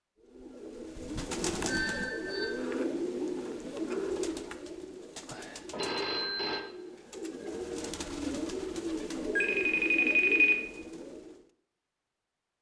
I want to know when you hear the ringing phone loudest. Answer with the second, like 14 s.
10 s.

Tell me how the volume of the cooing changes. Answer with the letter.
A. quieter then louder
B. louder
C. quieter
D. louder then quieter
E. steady
A.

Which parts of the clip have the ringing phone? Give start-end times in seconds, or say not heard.
1.6-2.5, 5.7-6.6, 9.3-10.6.